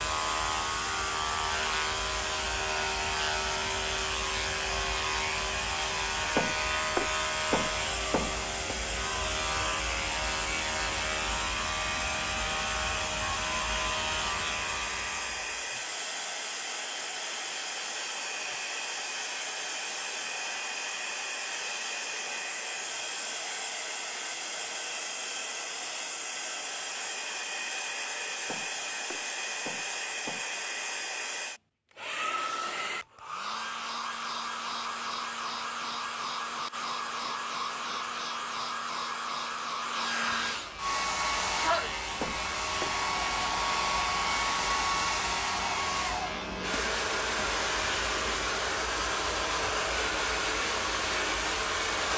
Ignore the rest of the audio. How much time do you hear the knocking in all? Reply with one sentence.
The knocking can be heard for 5 seconds in total.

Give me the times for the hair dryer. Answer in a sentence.
You can hear the hair dryer from 0.0 to 52.1 s.